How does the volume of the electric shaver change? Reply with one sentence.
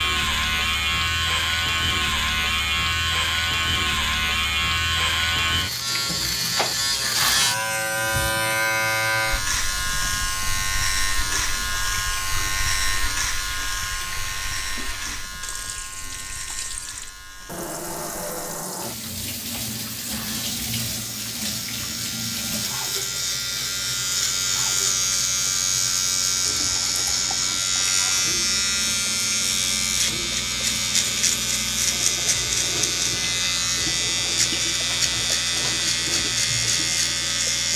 The volume of the electric shaver goes down, then up.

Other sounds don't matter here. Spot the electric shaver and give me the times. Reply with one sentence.
The electric shaver can be heard from 0.0 to 37.7 s.